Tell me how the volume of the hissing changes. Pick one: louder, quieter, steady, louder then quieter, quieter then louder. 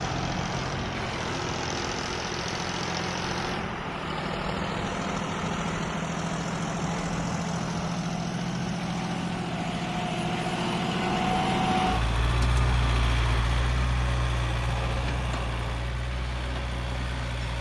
steady.